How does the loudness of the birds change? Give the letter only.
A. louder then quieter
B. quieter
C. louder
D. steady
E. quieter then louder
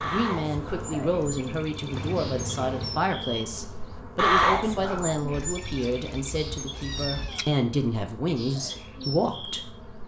A.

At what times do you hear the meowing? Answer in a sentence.
The meowing can be heard from 1.9 to 3.0 s and from 5.3 to 7.5 s.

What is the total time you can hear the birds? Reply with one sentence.
The birds can be heard for 10 seconds in total.